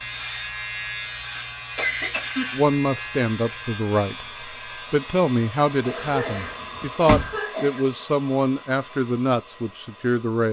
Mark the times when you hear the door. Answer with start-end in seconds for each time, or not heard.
6.0-7.3.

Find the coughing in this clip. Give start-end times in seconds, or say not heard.
1.4-2.5, 5.8-7.8.